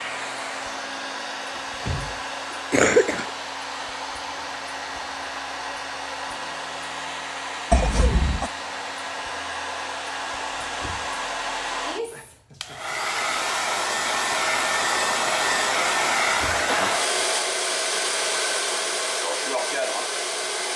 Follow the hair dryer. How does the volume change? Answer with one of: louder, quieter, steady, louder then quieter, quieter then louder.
louder.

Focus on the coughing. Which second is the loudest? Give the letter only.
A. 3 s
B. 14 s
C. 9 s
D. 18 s
A.